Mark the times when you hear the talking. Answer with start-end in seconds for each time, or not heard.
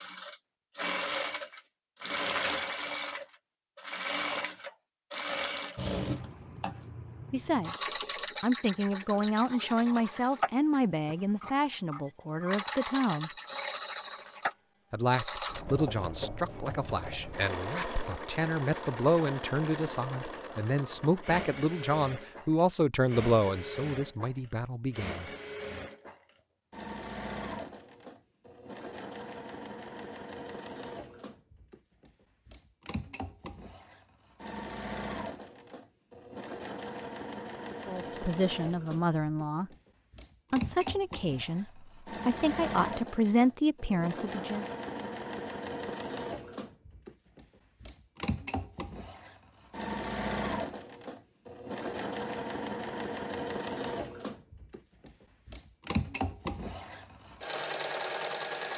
7.3-7.8, 8.4-13.3, 14.9-25.2, 37.9-39.7, 40.5-44.6.